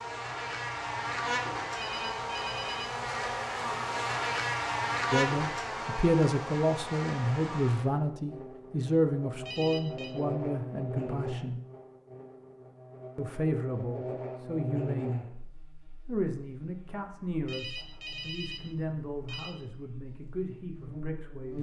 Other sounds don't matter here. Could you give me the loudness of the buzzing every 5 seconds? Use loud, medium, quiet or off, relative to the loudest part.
loud, loud, medium, quiet, medium.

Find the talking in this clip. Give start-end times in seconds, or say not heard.
5.1-11.6, 13.2-15.2, 16.1-21.5.